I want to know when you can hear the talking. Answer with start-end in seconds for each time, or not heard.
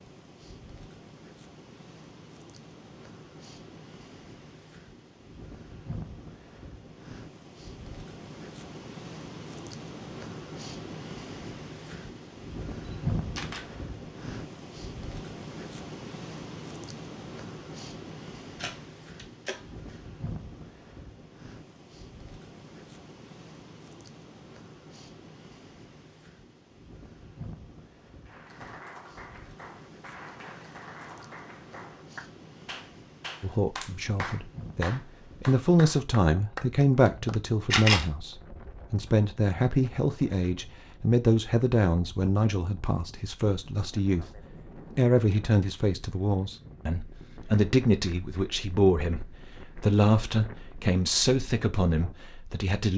33.4-52.9.